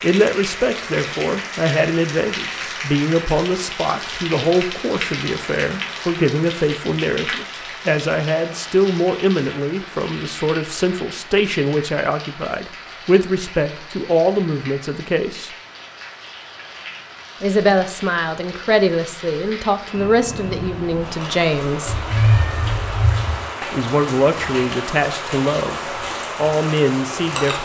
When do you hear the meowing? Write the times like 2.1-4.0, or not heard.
21.9-23.4.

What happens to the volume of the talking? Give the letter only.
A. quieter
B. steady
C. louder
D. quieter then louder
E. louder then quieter
B.